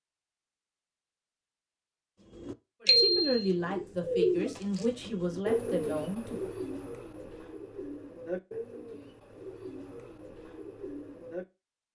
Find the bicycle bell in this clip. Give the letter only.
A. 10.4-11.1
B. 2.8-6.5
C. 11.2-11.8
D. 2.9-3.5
D.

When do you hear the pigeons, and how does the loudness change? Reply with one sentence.
The pigeons can be heard from 2.3 to 11.4 s, getting quieter.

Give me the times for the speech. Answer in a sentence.
The speech can be heard from 2.8 to 6.5 s.